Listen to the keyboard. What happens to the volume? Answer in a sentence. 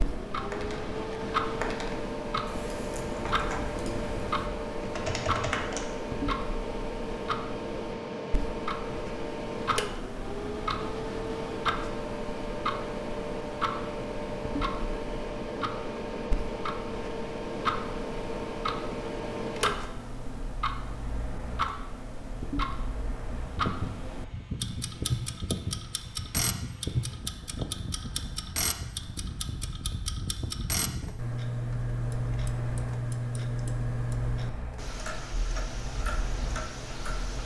The loudness of the keyboard goes down, then up.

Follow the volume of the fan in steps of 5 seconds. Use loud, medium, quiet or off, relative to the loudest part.
loud, loud, loud, loud, medium, loud, medium, medium.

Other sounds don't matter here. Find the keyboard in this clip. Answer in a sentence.
The keyboard can be heard from 0.5 to 5.8 s.